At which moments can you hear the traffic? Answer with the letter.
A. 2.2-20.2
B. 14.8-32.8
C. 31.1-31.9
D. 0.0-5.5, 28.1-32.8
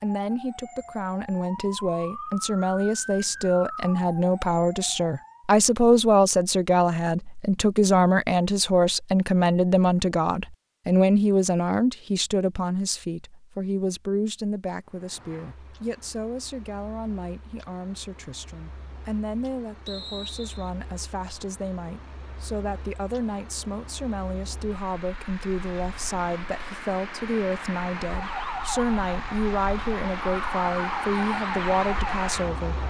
B.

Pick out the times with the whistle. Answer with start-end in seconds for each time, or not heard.
19.9-20.7.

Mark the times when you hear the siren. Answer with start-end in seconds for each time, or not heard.
0.0-5.5, 28.1-32.8.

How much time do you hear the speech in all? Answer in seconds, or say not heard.
33 s.